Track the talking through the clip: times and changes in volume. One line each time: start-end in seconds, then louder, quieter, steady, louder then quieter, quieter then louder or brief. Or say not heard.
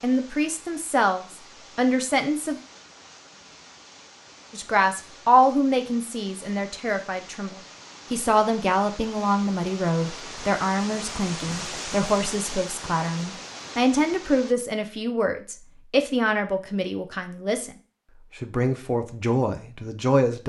0.0-2.6 brief
4.5-17.7 steady
18.4-20.4 brief.